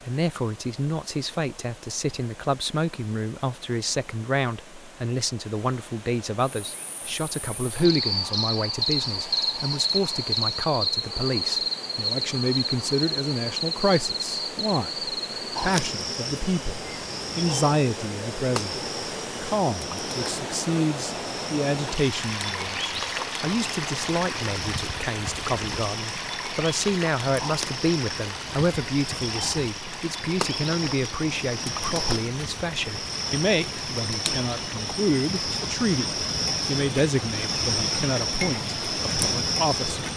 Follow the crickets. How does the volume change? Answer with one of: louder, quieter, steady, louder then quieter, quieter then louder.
quieter then louder.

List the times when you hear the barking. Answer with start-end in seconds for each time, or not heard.
not heard.